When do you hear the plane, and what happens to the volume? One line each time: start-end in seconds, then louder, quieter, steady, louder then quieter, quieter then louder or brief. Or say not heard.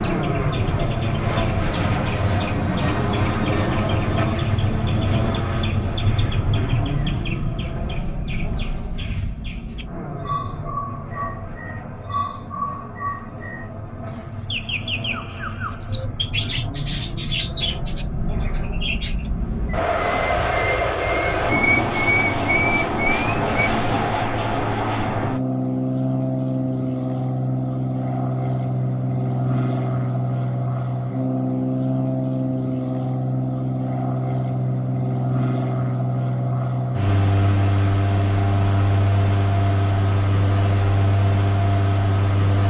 0.0-42.6 quieter then louder.